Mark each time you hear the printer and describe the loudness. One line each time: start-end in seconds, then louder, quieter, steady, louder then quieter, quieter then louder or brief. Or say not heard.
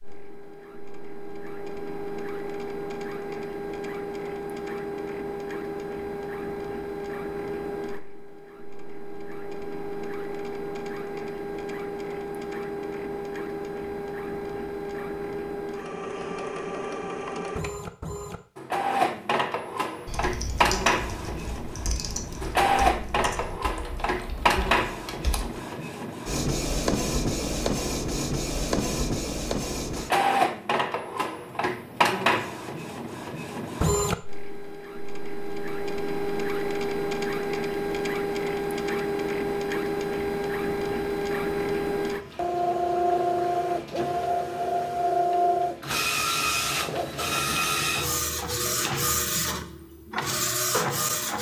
0.0-51.3 louder.